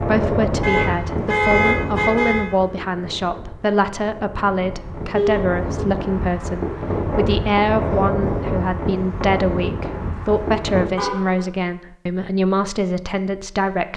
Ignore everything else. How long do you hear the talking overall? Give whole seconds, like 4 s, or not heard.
14 s.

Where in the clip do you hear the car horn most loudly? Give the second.
2 s.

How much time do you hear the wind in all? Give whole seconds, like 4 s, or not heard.
11 s.